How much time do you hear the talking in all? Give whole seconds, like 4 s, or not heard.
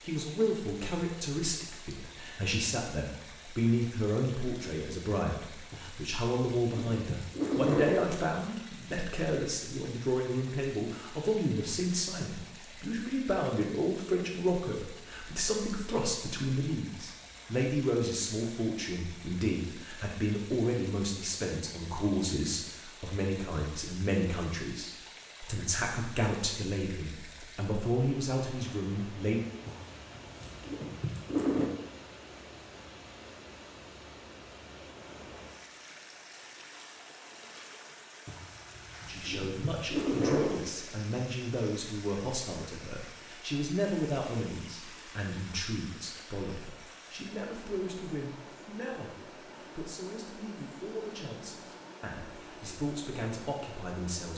45 s.